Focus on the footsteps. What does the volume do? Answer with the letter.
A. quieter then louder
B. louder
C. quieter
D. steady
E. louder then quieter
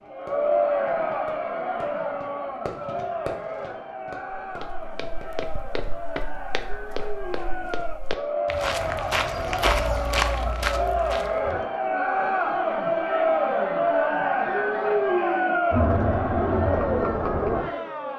B.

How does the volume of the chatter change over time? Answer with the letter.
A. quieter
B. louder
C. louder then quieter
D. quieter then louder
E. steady
D.